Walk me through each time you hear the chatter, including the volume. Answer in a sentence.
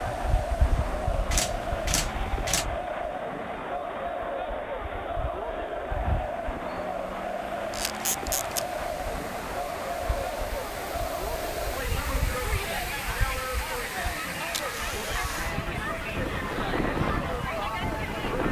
You can hear the chatter from 0.0 to 18.4 s, at a steady volume.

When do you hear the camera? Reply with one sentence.
You can hear the camera from 1.3 to 2.6 s, from 7.7 to 8.7 s and from 14.6 to 15.6 s.